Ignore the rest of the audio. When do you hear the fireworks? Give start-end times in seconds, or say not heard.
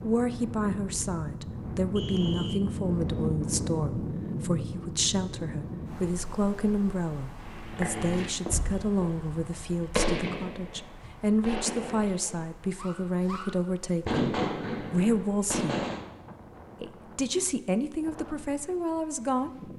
7.4-16.0.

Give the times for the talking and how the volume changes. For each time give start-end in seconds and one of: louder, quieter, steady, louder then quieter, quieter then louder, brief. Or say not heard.
0.0-15.8 steady
16.8-19.7 brief.